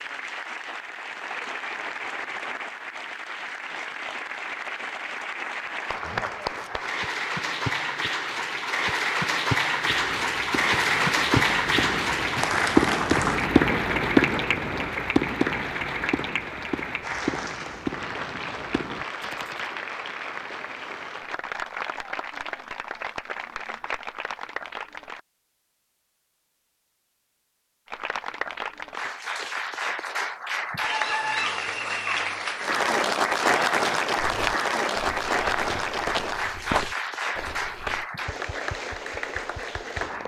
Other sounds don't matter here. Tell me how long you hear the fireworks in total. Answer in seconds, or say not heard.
10 s.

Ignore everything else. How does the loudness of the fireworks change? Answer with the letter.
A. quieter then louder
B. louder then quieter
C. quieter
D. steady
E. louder
B.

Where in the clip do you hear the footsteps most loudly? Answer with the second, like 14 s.
37 s.